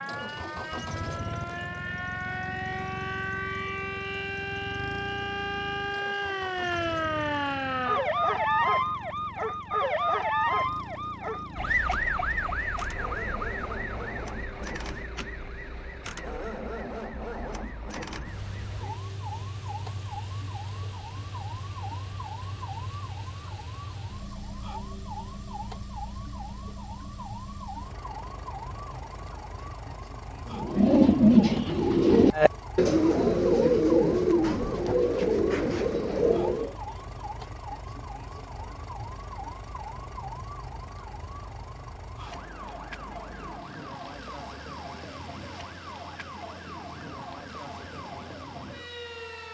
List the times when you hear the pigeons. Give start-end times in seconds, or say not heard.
30.5-36.8.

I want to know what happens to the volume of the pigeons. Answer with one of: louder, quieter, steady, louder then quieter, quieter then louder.
quieter.